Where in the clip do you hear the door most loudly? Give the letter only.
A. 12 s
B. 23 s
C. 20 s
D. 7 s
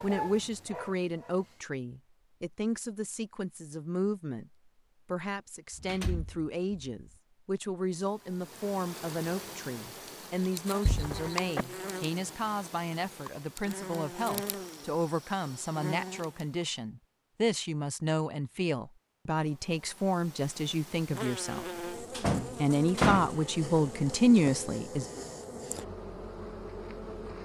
B.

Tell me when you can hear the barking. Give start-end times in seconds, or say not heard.
0.0-1.6.